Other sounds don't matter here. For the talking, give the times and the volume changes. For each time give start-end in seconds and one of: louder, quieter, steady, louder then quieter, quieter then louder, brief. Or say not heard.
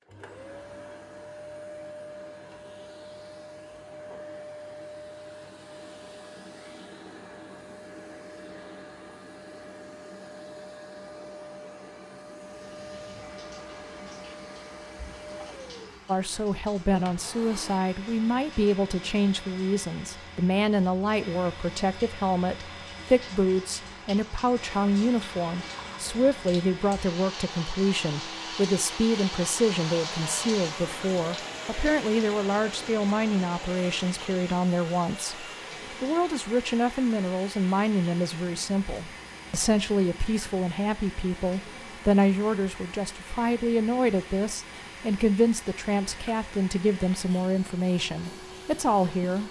16.1-49.4 steady.